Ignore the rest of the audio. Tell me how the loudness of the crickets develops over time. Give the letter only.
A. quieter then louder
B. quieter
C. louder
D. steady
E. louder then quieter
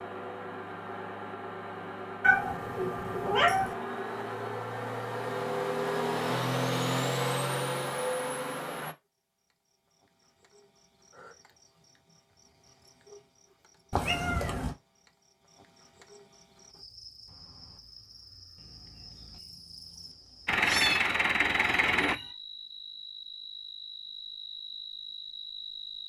C.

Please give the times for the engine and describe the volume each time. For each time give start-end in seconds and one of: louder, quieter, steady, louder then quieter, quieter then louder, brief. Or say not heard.
0.0-8.9 louder
20.4-22.1 brief.